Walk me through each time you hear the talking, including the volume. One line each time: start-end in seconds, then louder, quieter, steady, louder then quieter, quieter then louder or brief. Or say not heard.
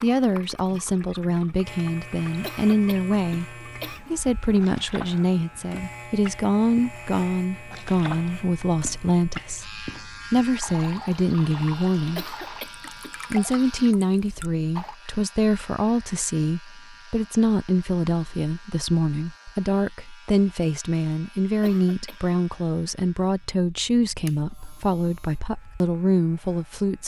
0.0-12.3 steady
13.3-27.0 steady.